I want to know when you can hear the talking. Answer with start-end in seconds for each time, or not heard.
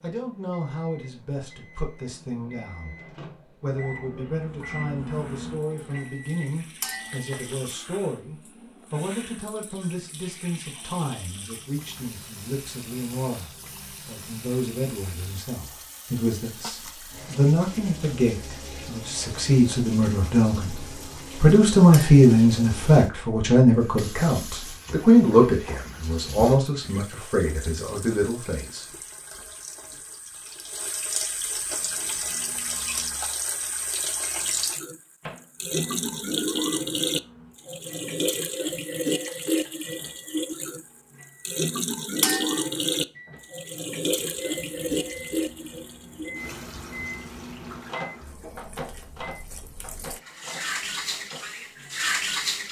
0.0-3.0, 3.6-28.9.